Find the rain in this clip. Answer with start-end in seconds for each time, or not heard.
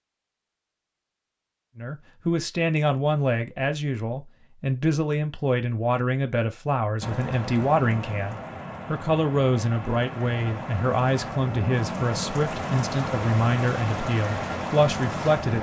7.0-15.5.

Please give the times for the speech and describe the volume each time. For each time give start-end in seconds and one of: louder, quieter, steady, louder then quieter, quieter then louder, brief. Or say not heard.
1.8-15.5 steady.